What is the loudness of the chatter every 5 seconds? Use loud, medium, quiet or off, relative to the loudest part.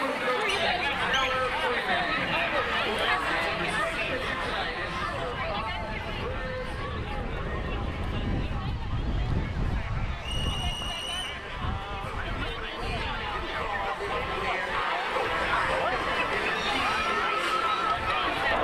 loud, medium, medium, loud.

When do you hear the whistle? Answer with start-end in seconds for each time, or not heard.
0.1-1.4, 10.2-11.4.